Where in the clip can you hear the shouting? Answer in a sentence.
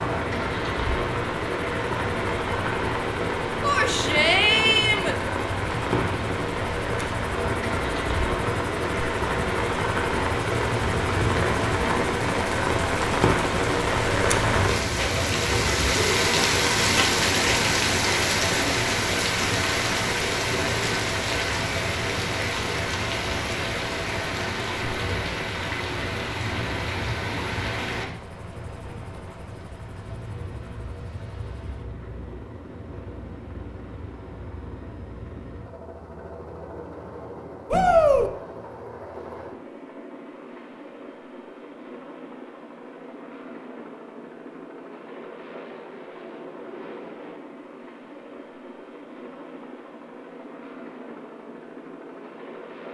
You can hear the shouting from 3.6 to 5.2 s and from 37.7 to 38.3 s.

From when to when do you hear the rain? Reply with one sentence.
You can hear the rain from 0.0 to 28.1 s.